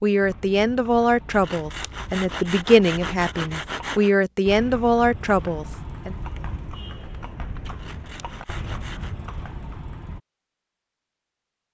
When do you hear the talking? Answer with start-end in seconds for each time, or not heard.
0.0-6.2.